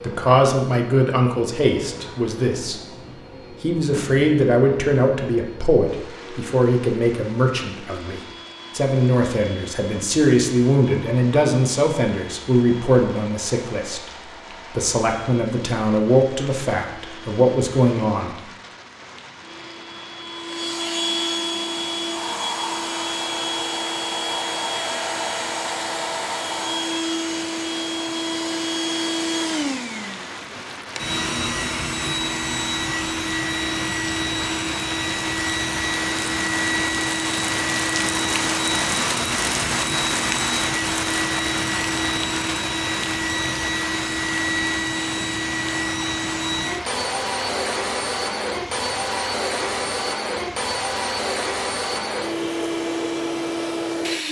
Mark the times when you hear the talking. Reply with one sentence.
You can hear the talking from 0.0 to 2.9 s, from 3.6 to 14.1 s and from 14.7 to 18.3 s.